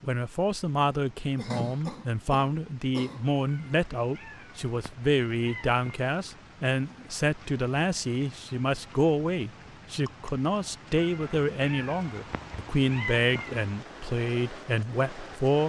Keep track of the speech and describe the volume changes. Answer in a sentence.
The volume of the speech stays about the same.